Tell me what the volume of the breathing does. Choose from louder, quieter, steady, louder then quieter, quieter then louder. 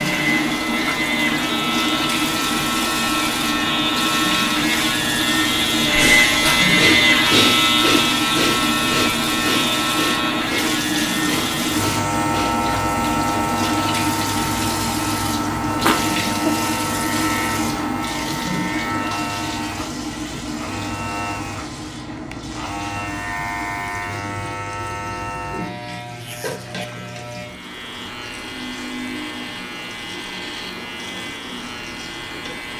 quieter.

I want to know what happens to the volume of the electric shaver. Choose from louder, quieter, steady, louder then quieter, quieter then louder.
quieter.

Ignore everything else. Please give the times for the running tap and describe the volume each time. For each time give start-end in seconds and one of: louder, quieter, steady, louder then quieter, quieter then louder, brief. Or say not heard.
0.0-32.7 quieter.